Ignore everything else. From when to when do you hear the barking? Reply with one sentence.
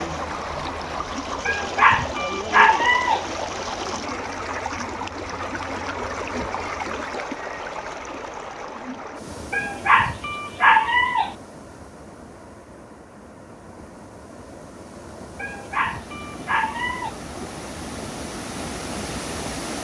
The barking can be heard from 1.4 to 3.2 s, from 9.5 to 11.3 s and from 15.3 to 17.1 s.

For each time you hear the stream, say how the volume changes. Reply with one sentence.
You can hear the stream from 0.0 to 19.7 s, getting quieter then louder.